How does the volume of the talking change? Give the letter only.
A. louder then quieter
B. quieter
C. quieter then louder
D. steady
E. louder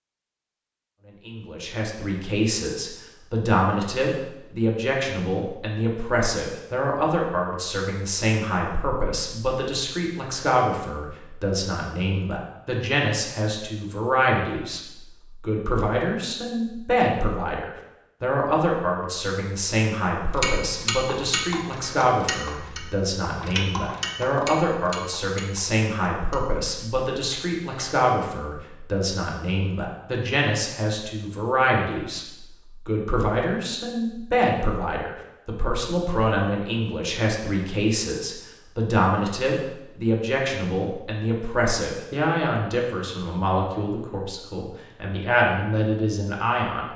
D.